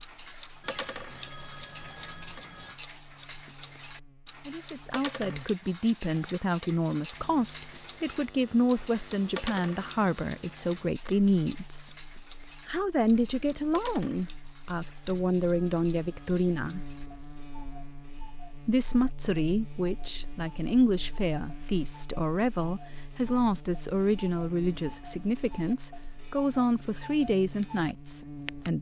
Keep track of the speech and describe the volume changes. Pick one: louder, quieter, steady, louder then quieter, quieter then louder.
steady.